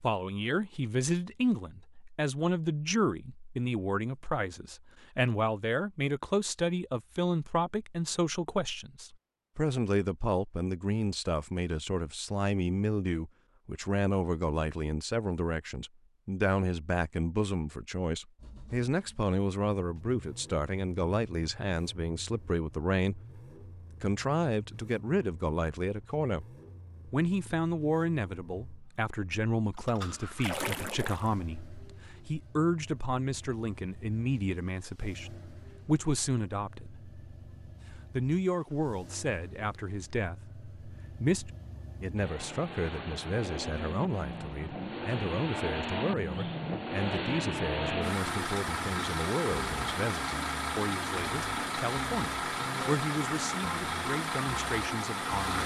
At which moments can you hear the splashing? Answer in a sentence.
The splashing can be heard from 30.4 to 31.4 s.